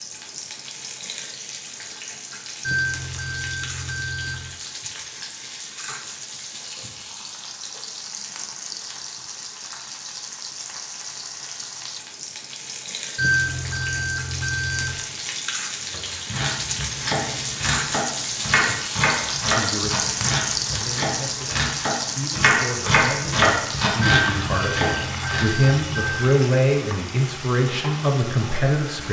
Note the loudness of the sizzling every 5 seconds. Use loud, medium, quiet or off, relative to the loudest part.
medium, medium, medium, loud, loud, medium.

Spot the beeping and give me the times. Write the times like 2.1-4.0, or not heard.
2.6-4.5, 13.2-14.9, 24.0-26.4.